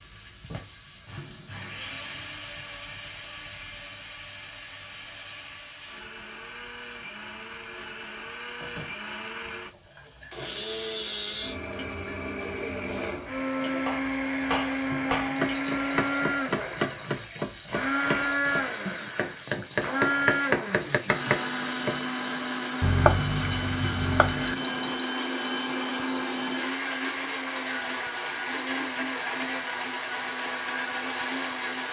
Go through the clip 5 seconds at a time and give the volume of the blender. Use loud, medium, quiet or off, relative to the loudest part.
quiet, medium, loud, loud, loud, loud, loud.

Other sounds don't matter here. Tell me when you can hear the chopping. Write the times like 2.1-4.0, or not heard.
13.8-22.0, 22.8-24.6.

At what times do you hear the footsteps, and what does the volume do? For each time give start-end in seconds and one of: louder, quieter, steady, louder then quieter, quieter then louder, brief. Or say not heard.
not heard.